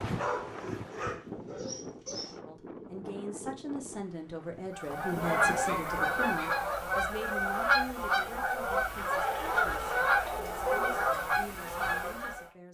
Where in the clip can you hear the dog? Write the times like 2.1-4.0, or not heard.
0.1-2.4, 5.2-6.7, 9.1-11.1.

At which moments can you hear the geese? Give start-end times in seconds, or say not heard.
4.7-12.4.